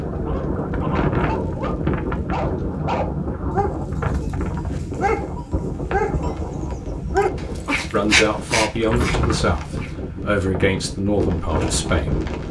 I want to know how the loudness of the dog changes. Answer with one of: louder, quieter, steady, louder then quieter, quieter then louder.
louder.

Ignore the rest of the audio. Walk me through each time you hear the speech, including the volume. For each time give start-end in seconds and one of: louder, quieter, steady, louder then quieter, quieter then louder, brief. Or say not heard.
7.9-12.2 steady.